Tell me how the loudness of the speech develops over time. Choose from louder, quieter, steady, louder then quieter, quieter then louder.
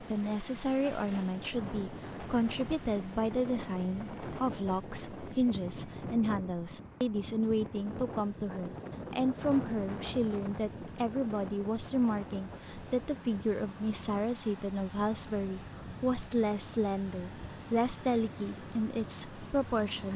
steady.